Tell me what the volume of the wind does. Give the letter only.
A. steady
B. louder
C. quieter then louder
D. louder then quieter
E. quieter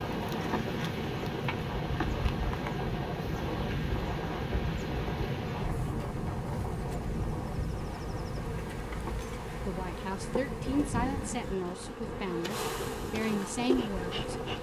E.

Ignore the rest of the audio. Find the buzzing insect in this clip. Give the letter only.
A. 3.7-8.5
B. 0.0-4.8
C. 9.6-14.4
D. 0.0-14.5
D.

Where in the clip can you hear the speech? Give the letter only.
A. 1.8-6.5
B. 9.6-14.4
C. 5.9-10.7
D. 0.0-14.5
B.